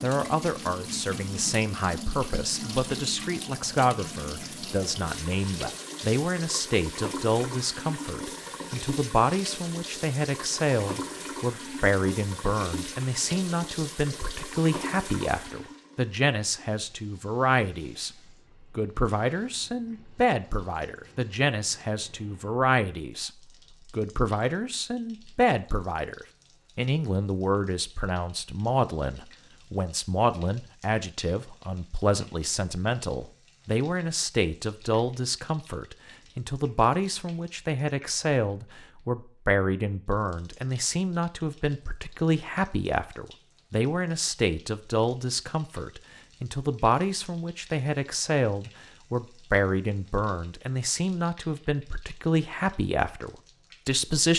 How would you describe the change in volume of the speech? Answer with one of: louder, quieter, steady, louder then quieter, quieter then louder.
steady.